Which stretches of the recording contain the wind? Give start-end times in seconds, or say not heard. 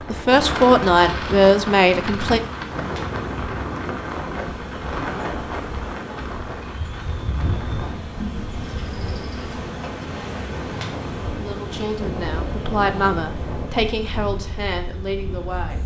0.0-15.8.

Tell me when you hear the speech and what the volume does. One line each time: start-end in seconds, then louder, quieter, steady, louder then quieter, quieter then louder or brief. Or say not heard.
0.0-2.4 brief
11.3-15.8 louder then quieter.